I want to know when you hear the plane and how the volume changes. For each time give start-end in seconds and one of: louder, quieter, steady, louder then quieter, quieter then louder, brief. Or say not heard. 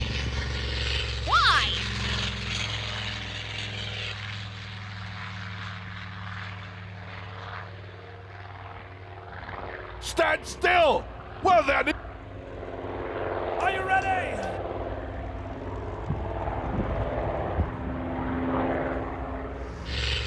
0.0-20.2 quieter then louder.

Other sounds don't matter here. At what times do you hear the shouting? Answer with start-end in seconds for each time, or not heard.
1.2-1.9, 10.0-11.9, 13.6-14.6.